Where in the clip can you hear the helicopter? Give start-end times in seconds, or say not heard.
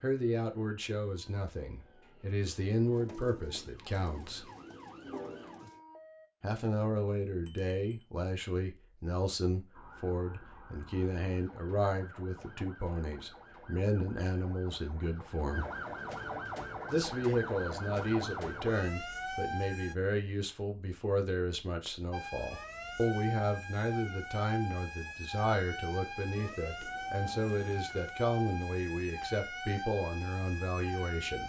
not heard.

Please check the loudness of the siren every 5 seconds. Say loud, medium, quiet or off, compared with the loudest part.
quiet, medium, quiet, loud, loud, loud, loud.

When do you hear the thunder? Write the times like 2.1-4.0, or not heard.
not heard.